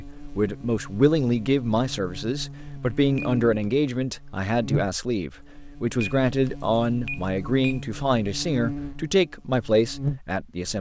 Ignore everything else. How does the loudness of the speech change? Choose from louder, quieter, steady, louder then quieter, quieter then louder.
steady.